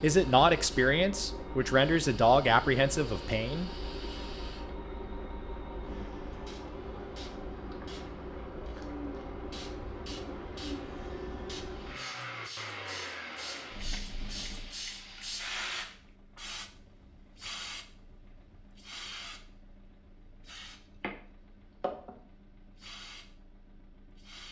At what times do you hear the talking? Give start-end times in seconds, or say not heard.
0.0-3.7.